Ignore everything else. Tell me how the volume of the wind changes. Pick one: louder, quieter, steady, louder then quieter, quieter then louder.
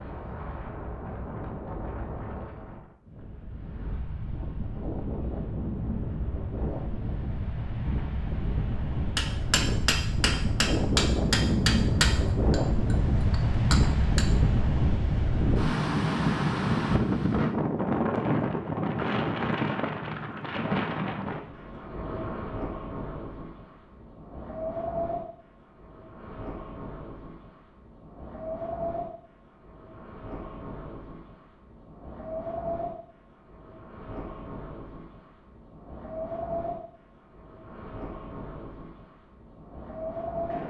louder then quieter.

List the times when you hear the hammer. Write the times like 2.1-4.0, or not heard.
9.2-14.2.